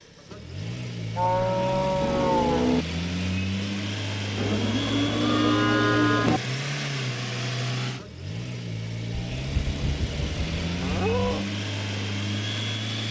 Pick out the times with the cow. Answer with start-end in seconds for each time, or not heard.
1.1-2.9, 4.3-6.4, 9.1-11.4.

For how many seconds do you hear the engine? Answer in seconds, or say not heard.
13 s.